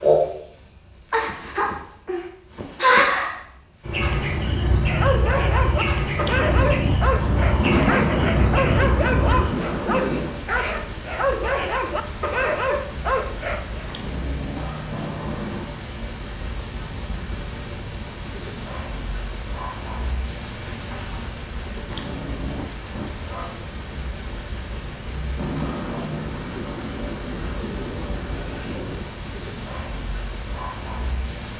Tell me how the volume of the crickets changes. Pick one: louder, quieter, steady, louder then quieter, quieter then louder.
steady.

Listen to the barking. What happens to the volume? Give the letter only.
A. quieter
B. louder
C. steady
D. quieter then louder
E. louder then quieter
C.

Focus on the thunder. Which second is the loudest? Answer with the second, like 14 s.
8 s.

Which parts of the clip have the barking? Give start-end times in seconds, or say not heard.
4.8-13.9.